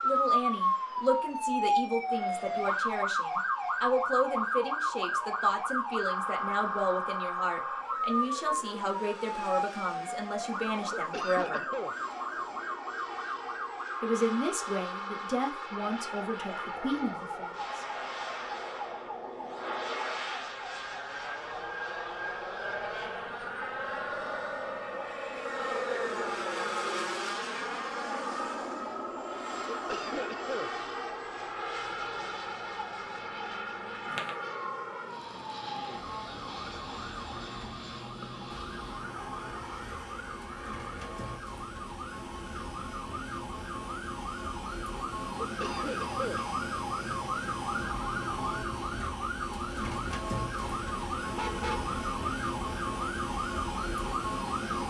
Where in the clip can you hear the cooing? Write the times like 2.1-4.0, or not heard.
not heard.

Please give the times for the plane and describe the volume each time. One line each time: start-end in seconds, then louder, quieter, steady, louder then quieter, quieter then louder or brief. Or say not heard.
0.0-41.4 louder then quieter.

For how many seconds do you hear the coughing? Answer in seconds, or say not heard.
3 s.